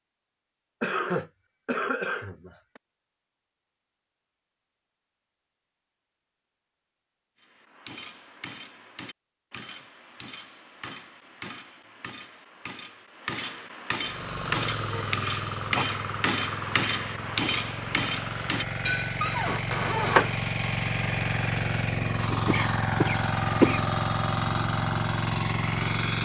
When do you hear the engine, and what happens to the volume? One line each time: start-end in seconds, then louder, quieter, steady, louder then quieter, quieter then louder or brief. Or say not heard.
13.9-26.2 louder.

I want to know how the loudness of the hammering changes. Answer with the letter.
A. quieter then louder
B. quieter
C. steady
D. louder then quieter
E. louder
E.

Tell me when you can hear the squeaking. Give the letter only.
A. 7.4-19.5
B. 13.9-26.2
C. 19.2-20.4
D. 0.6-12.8
C.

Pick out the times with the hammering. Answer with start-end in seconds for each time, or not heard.
7.4-19.5.